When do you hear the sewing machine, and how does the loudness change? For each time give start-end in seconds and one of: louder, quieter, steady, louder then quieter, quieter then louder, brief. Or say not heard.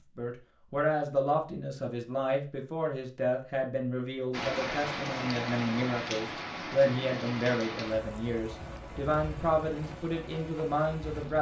not heard.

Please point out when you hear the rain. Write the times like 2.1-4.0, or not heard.
4.3-11.3.